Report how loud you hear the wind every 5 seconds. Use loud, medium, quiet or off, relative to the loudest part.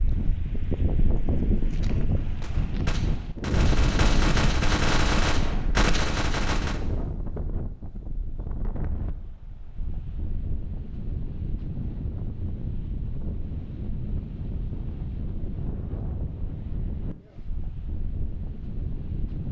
loud, medium, medium, medium.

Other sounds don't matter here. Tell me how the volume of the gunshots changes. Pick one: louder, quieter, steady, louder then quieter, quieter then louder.
louder.